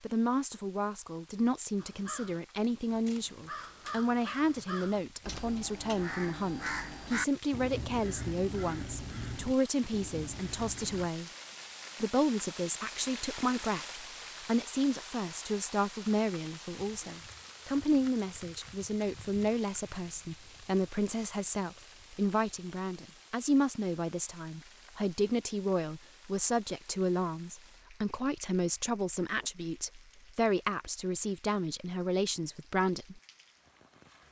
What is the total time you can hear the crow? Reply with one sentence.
The crow can be heard for 9 seconds in total.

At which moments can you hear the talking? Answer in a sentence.
You can hear the talking from 0.0 to 11.3 s and from 11.9 to 33.2 s.